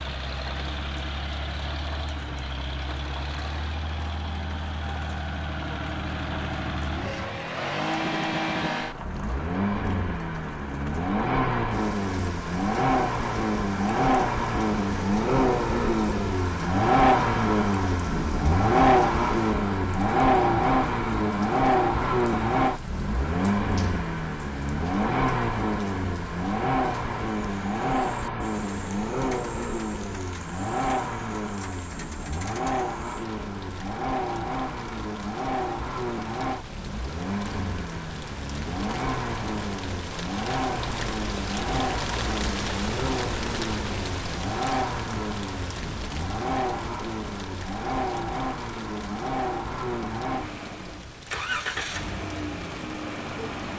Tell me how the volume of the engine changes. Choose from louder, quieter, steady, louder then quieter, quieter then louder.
louder then quieter.